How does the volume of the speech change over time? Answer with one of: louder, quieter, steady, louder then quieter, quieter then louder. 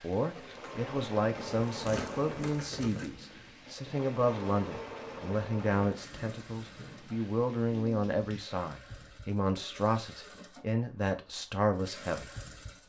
steady.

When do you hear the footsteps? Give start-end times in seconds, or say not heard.
not heard.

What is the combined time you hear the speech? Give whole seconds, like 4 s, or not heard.
13 s.